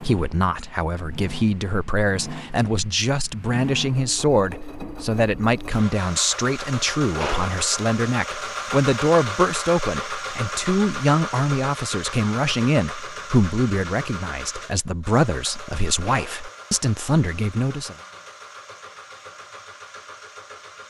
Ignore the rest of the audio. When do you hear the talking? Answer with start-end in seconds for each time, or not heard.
0.0-17.9.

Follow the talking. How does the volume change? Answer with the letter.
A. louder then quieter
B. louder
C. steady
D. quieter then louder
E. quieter
C.